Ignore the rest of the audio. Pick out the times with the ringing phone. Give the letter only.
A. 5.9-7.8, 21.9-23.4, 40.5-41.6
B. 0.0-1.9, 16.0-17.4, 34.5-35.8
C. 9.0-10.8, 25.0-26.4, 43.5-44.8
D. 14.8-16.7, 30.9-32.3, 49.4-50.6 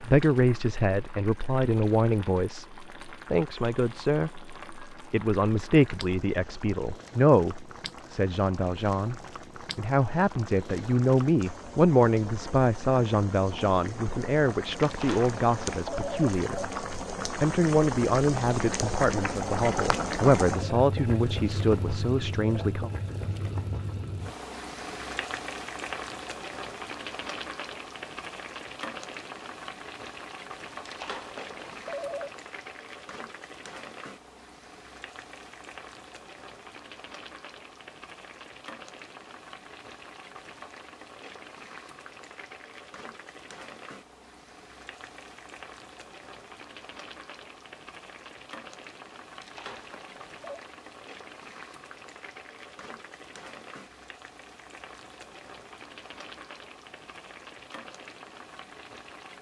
D.